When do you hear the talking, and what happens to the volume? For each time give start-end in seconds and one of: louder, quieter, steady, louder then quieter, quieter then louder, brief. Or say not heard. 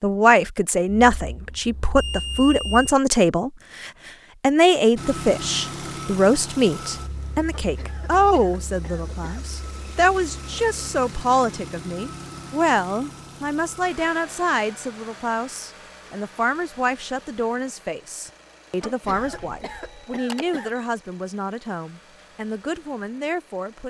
0.0-23.8 quieter.